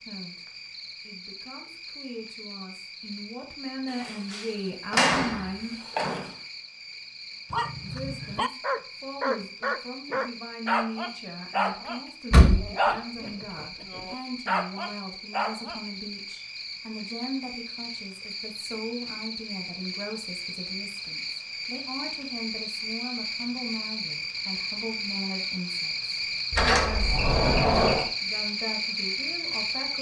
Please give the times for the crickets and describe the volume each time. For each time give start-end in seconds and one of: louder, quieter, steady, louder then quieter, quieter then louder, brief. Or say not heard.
0.0-29.9 louder.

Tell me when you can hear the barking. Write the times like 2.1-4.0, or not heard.
7.5-15.8.